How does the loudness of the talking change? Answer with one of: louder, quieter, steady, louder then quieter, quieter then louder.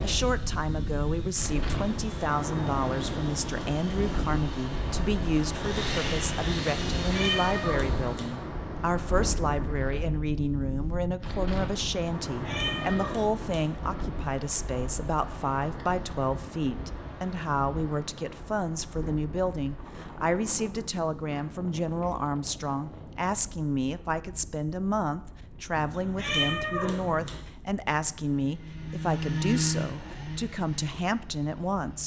steady.